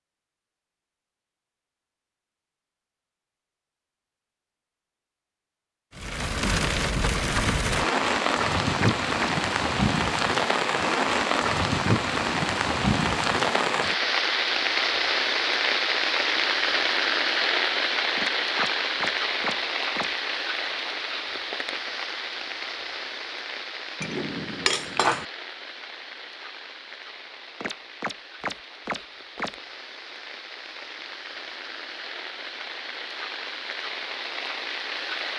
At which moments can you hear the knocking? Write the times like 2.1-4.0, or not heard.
8.8-9.3, 18.1-20.1, 27.6-29.6.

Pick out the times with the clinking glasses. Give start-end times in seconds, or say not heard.
24.0-25.2.